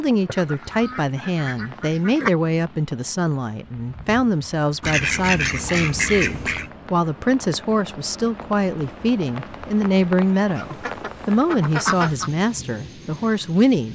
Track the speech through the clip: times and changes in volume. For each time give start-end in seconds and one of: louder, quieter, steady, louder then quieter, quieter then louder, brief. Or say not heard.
0.0-13.8 steady.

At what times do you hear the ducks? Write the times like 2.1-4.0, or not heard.
0.2-2.3, 4.8-6.7, 10.6-12.3.